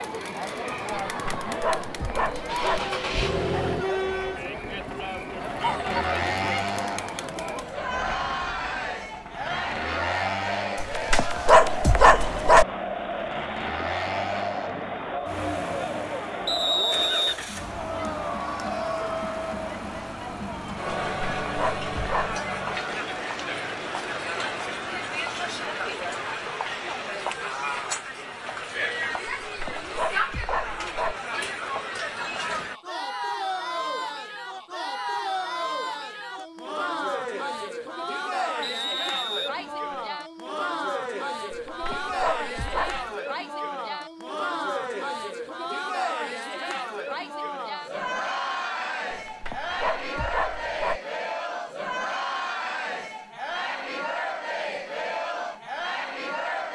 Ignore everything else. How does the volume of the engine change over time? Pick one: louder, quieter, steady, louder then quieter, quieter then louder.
quieter.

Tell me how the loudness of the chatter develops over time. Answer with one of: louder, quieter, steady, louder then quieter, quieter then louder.
steady.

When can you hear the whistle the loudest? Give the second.
17 s.